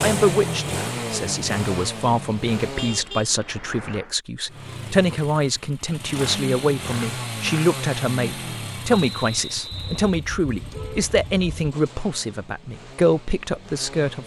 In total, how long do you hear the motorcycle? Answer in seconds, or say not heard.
13 s.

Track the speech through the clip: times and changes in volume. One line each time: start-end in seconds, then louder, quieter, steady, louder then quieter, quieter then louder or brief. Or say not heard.
0.0-14.2 steady.